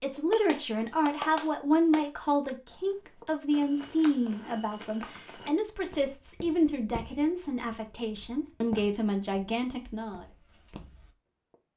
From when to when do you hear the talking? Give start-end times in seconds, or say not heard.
0.0-10.2.